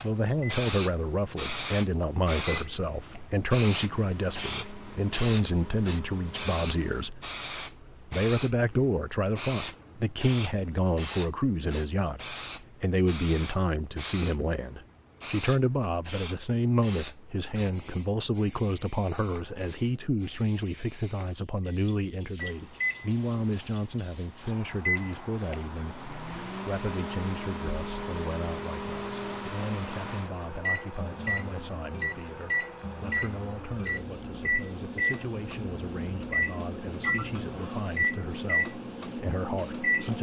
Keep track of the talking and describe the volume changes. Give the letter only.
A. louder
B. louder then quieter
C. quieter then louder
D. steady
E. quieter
E.